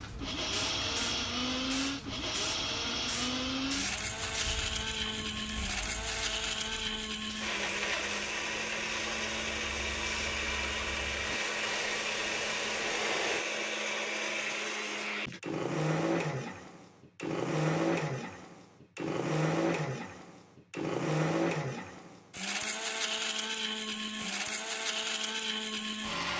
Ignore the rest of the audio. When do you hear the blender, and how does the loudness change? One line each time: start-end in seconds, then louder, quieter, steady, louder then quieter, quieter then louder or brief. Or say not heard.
0.1-26.3 steady.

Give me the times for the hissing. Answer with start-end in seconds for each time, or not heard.
0.0-13.4.